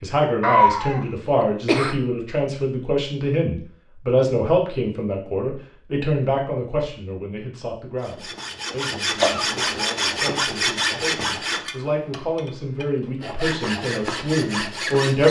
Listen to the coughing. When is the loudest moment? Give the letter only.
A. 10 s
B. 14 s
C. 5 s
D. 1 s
D.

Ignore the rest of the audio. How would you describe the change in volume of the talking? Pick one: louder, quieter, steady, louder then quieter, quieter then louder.
quieter then louder.